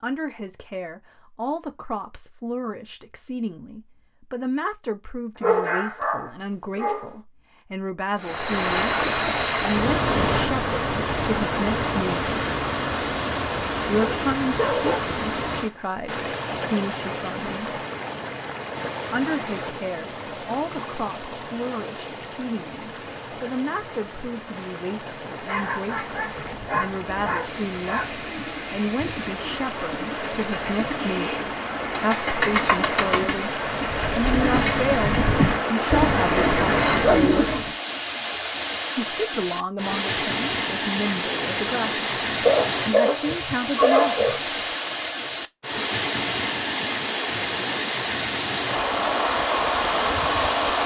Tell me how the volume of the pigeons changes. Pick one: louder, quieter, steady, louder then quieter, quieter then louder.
louder.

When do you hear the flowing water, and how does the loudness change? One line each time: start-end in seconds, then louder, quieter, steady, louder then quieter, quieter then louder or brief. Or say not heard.
8.2-50.8 quieter then louder.